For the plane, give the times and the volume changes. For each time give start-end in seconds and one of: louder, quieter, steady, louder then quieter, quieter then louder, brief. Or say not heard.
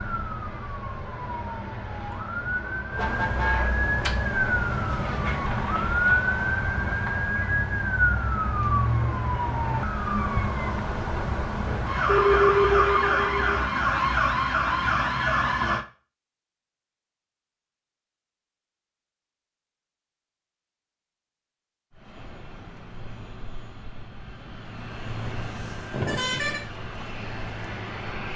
21.9-28.3 louder.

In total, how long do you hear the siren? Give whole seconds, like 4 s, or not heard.
16 s.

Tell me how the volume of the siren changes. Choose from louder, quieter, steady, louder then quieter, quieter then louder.
louder.